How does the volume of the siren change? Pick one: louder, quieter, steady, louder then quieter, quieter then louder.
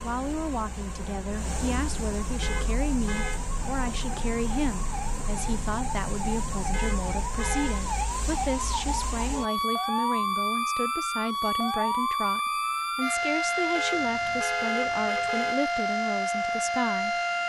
louder.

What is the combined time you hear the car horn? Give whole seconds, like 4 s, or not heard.
4 s.